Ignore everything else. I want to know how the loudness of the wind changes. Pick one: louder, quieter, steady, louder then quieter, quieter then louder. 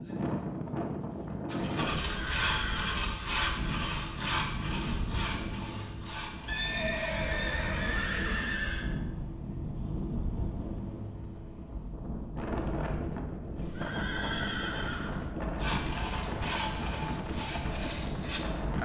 steady.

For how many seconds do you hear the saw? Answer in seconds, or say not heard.
10 s.